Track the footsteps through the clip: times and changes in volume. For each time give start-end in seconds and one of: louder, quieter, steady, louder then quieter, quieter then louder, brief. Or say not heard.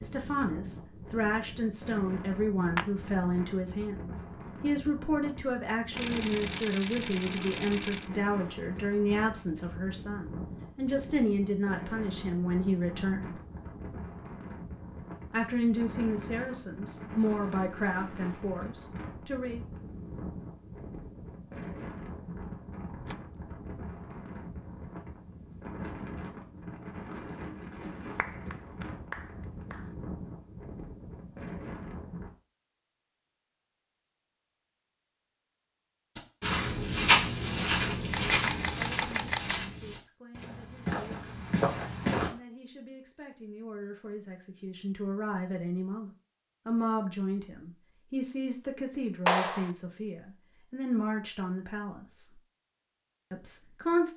36.1-42.3 quieter then louder.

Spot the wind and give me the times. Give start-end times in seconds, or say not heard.
0.0-32.4.